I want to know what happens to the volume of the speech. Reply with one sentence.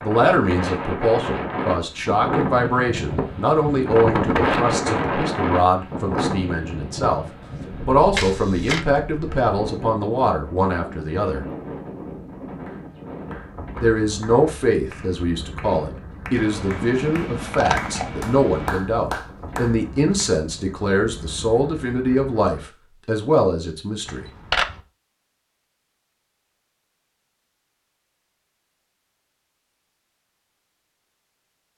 The loudness of the speech stays about the same.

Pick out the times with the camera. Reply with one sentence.
The camera can be heard from 8.2 to 8.8 s, from 16.4 to 18.8 s and from 24.1 to 24.8 s.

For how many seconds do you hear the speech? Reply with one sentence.
You can hear the speech for 21 seconds altogether.